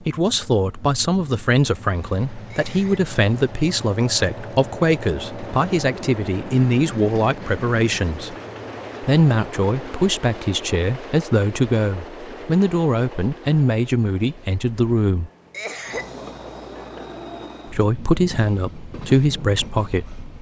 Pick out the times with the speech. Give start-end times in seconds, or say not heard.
0.0-8.3, 9.0-15.3, 17.6-20.2.